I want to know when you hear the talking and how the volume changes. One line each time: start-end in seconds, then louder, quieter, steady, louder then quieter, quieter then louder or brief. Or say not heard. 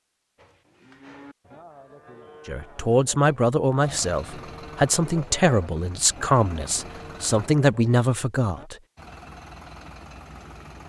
2.5-8.8 steady.